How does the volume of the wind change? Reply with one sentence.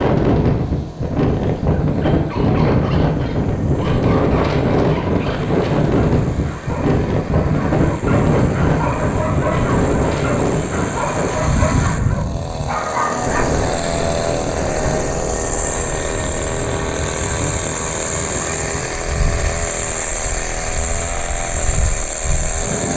The volume of the wind goes down.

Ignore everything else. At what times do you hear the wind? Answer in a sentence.
The wind can be heard from 0.0 to 22.9 s.